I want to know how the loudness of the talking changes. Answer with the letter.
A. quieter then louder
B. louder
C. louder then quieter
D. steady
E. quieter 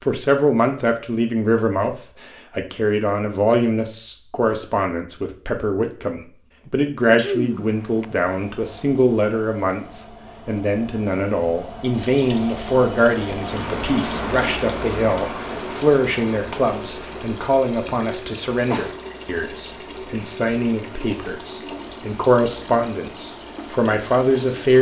D.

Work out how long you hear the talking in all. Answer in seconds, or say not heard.
25 s.